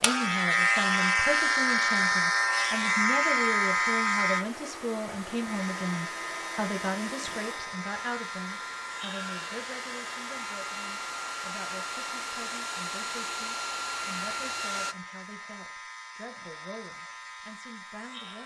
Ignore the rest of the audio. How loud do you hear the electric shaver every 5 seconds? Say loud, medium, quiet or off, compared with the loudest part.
loud, quiet, quiet, quiet.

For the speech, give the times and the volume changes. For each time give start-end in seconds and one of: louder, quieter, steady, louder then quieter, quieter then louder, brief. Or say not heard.
0.0-18.4 quieter.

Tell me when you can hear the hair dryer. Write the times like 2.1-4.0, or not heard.
0.0-14.9.